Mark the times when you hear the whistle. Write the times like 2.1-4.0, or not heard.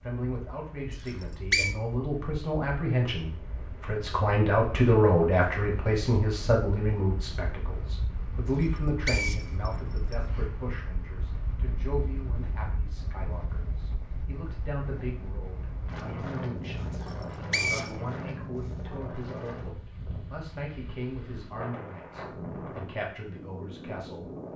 1.1-1.8, 8.6-10.2, 17.0-17.9.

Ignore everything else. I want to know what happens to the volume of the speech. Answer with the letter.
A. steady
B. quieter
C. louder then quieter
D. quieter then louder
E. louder
B.